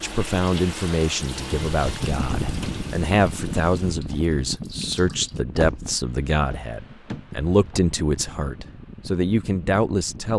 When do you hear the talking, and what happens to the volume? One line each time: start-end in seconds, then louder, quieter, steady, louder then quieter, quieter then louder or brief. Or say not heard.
0.0-10.3 steady.